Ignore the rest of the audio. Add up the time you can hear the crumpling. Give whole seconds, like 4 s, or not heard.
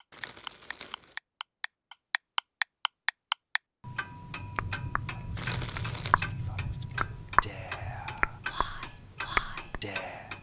2 s.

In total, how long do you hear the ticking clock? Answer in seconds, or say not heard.
10 s.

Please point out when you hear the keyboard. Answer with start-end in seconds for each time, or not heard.
not heard.